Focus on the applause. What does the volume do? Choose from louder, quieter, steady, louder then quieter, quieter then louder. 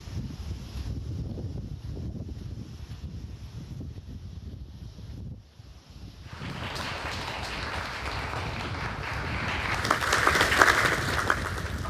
louder.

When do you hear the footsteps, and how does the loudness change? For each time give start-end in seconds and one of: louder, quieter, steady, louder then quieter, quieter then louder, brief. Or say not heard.
not heard.